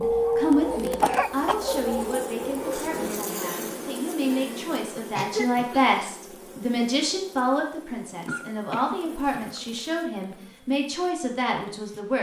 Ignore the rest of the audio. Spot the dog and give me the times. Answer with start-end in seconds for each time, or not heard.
0.0-3.0.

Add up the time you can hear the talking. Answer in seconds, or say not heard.
12 s.